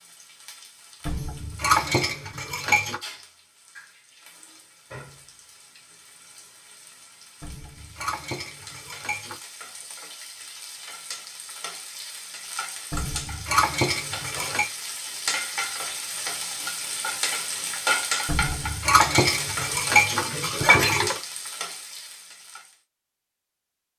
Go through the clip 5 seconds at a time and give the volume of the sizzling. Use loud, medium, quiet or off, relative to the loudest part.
quiet, quiet, medium, loud, medium.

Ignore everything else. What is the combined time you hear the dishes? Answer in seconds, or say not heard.
9 s.